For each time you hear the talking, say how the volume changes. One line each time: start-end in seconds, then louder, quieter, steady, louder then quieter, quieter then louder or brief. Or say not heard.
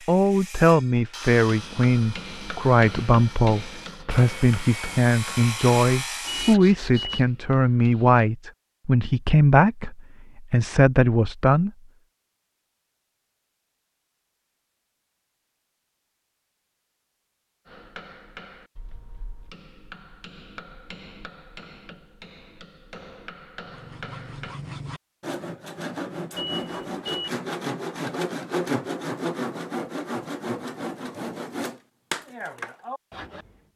0.1-11.7 steady.